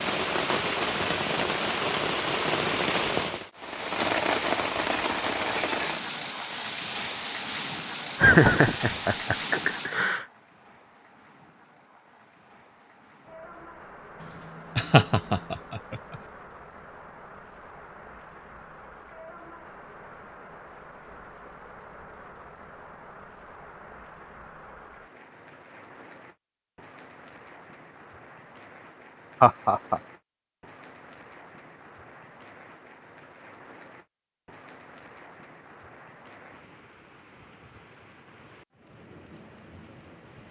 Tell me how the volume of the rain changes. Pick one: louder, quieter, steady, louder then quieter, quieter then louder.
quieter.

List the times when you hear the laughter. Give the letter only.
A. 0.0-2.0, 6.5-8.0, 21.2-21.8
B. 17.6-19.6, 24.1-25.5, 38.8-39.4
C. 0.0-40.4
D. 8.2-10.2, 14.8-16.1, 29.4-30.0
D.